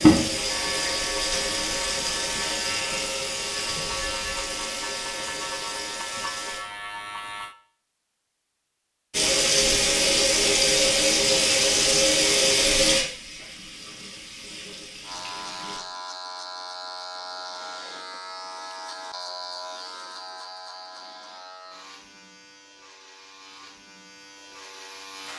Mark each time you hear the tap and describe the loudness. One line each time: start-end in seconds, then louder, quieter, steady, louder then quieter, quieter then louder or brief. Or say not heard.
0.0-6.6 quieter
9.1-15.8 quieter.